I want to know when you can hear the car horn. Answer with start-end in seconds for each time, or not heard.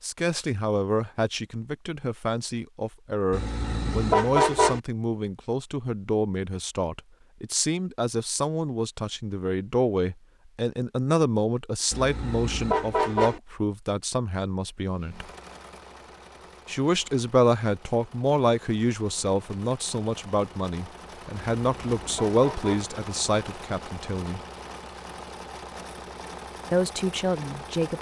3.3-4.8, 11.9-13.4, 21.6-22.9.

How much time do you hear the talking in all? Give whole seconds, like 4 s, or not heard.
24 s.